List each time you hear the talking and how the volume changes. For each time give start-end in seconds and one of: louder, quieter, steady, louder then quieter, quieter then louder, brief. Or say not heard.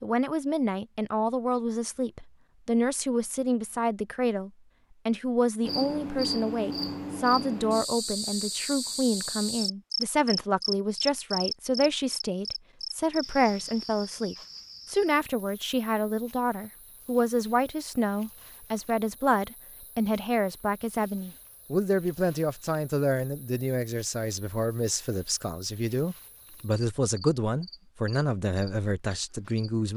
0.0-29.9 steady.